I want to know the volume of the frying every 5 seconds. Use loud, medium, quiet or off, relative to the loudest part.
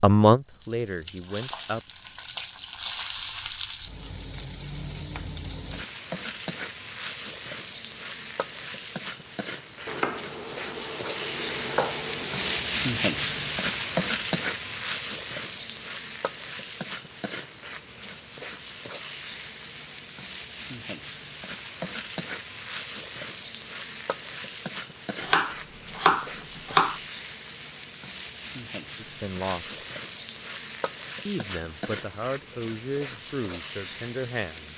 medium, medium, loud, medium, medium, medium, medium.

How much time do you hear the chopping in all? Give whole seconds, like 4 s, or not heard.
5 s.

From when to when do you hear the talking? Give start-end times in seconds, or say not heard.
0.0-1.8, 28.9-29.8, 31.2-34.7.